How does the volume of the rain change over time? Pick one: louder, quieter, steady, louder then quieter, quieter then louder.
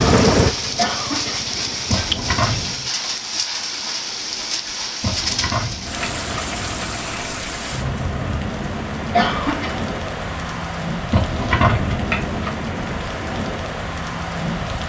steady.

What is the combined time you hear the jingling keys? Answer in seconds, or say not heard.
4 s.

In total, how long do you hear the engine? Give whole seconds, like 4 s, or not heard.
3 s.